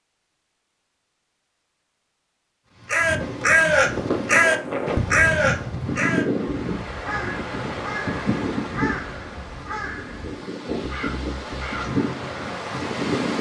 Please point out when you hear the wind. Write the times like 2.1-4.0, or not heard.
3.0-13.3.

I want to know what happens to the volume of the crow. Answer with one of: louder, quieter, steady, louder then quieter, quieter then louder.
quieter.